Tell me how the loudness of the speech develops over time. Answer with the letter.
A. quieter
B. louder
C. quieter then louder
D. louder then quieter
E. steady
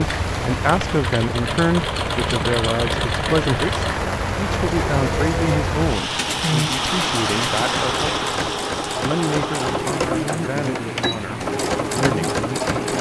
A.